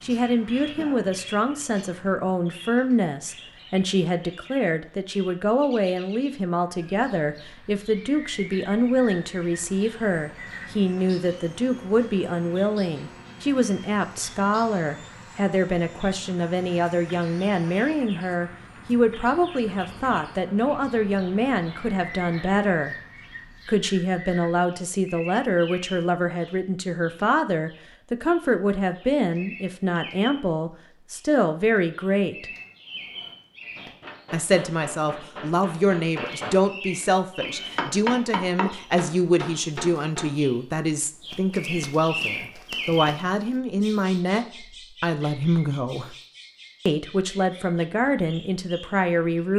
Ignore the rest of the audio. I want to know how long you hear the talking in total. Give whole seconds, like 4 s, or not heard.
46 s.